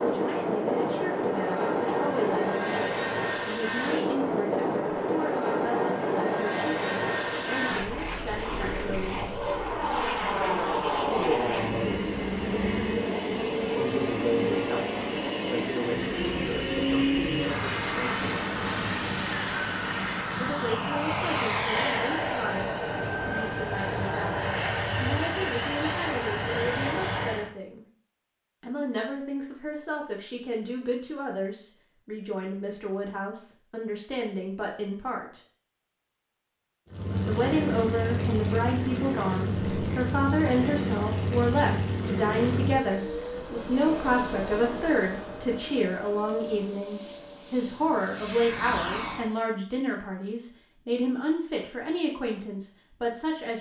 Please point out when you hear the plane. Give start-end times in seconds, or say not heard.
0.0-27.5, 36.9-49.3.